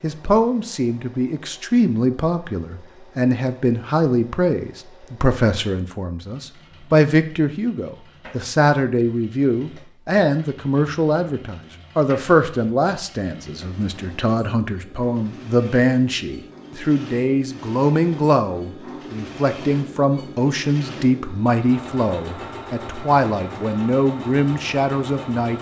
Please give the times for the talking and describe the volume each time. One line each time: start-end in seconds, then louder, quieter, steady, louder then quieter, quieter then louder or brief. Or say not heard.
0.0-25.5 steady.